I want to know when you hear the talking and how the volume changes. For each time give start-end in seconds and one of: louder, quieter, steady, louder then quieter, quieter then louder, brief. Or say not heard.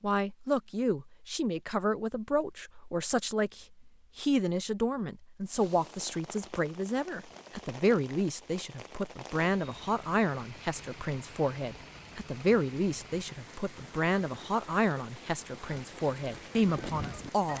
0.0-17.5 steady.